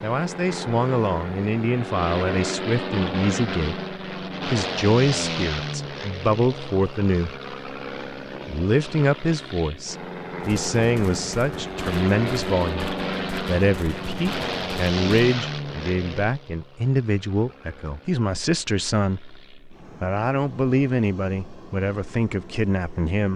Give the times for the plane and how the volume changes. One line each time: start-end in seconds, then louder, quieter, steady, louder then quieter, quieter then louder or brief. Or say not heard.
0.0-23.3 quieter.